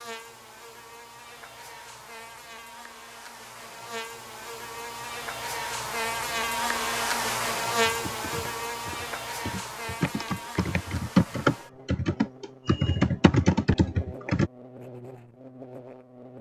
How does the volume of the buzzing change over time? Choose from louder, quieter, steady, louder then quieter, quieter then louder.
louder then quieter.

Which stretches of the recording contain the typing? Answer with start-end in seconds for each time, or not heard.
7.8-14.5.